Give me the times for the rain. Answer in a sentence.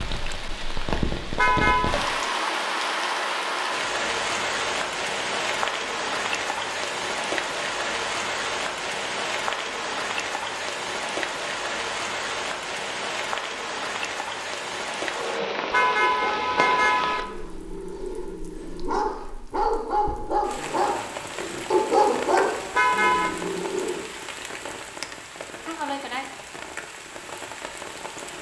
You can hear the rain from 0.0 to 28.3 s.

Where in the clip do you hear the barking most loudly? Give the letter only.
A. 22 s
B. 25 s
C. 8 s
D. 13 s
A.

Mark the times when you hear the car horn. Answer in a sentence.
You can hear the car horn from 1.4 to 1.9 s, from 15.7 to 17.2 s and from 22.7 to 23.4 s.